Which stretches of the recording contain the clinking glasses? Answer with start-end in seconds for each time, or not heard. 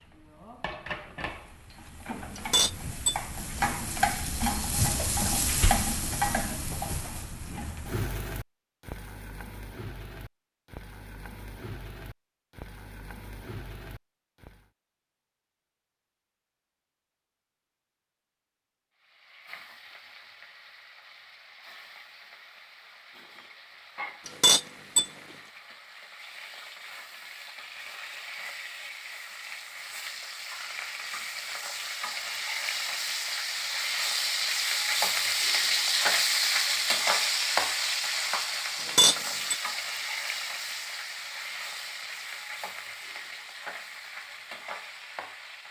2.4-3.8, 24.2-25.1, 38.8-39.5.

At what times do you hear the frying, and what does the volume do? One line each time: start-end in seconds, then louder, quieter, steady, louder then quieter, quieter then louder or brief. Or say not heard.
0.0-14.7 louder then quieter
19.0-45.6 louder then quieter.